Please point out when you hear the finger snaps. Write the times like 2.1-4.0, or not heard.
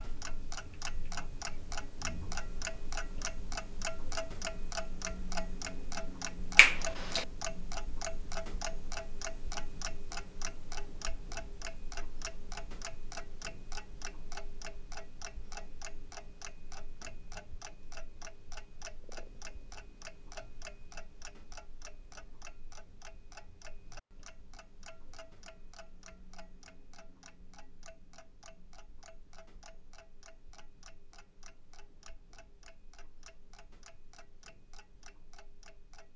6.5-7.2.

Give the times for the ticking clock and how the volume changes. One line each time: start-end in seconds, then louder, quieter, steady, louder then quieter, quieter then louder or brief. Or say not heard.
0.0-36.1 quieter.